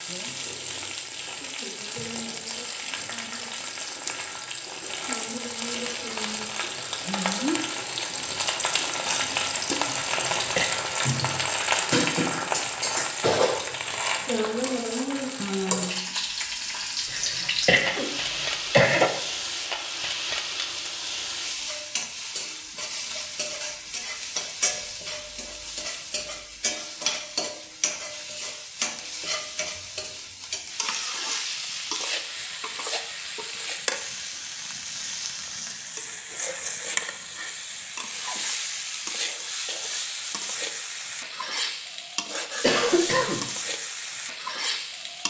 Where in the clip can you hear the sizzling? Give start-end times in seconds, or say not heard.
0.0-45.2.